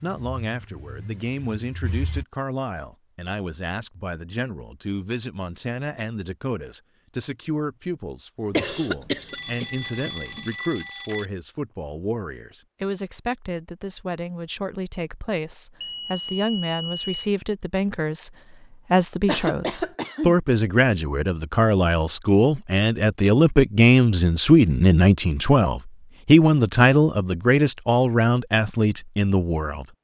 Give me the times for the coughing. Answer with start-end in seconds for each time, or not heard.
8.5-10.4, 19.2-20.4.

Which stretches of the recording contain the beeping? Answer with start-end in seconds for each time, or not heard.
9.2-11.3, 15.8-17.2.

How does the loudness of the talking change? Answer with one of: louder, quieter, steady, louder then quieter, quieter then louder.
louder.